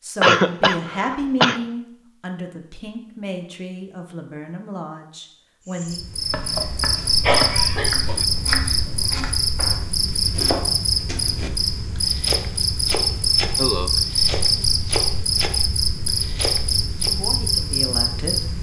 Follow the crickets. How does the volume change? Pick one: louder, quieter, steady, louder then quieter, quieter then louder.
steady.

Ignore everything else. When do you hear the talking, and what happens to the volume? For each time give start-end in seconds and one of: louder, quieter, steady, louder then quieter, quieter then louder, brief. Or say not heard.
0.0-6.0 quieter
17.1-18.4 brief.